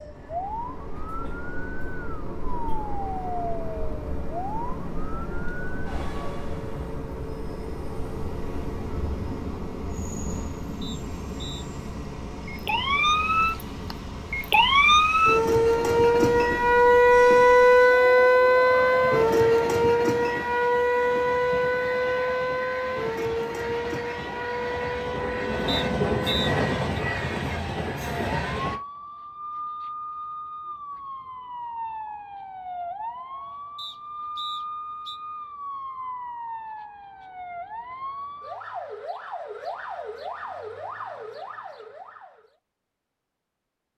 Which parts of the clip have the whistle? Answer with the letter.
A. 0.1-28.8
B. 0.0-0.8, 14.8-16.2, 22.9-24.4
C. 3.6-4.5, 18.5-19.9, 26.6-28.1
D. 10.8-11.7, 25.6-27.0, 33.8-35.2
D.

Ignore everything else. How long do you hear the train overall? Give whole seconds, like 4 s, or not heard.
29 s.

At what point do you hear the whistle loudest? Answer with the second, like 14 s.
26 s.